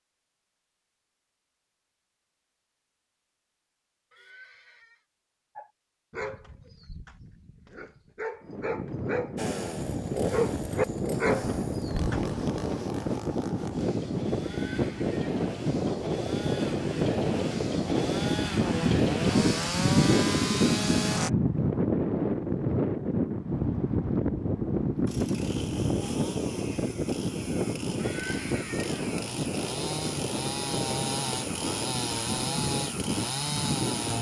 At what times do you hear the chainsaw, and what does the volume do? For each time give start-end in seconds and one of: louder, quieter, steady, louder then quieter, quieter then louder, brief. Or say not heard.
9.3-21.3 quieter then louder
24.9-34.1 louder.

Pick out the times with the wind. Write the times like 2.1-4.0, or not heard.
8.4-34.1.